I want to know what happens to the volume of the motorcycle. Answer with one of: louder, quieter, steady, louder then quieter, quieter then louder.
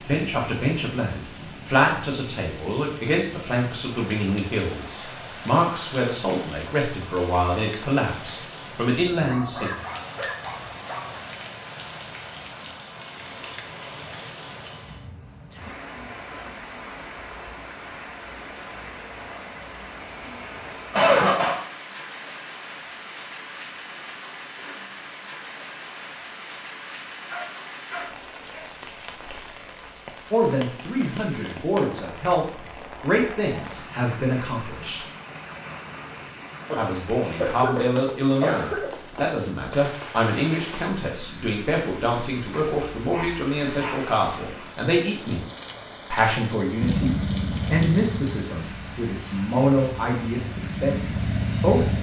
quieter then louder.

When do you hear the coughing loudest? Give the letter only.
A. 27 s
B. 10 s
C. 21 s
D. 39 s
C.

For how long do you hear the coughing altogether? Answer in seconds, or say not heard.
3 s.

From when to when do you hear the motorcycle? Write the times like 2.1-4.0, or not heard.
46.8-51.9.